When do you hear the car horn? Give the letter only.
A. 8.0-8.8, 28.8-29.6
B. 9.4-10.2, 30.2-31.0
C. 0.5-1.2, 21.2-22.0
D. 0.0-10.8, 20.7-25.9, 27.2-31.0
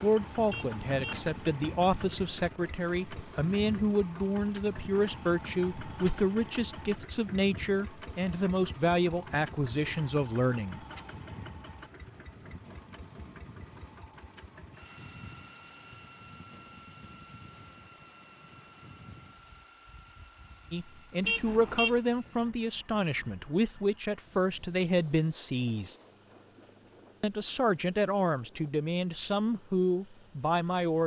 C.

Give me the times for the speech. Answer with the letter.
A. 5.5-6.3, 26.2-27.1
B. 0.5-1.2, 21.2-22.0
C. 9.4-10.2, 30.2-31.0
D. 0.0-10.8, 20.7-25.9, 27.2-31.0
D.